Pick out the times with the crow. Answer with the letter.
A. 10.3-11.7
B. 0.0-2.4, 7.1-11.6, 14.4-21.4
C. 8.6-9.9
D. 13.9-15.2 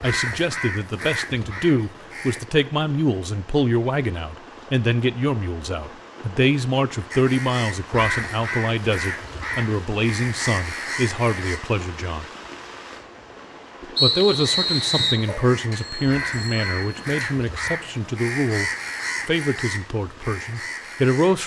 B.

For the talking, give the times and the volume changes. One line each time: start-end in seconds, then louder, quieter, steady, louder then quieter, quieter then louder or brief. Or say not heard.
0.0-12.2 steady
14.0-21.4 quieter.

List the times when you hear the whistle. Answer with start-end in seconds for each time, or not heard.
13.9-15.2.